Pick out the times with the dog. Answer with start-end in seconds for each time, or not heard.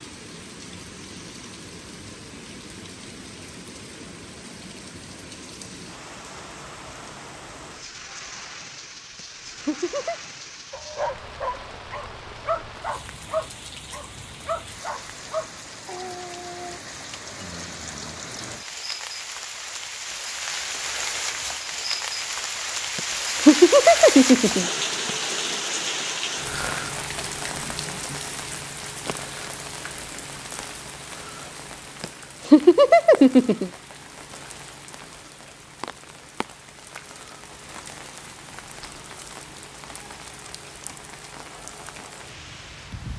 10.7-16.8.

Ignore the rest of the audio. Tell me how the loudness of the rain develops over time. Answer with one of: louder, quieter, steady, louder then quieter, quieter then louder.
louder then quieter.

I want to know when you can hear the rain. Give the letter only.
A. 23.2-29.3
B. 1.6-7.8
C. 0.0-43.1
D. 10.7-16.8
C.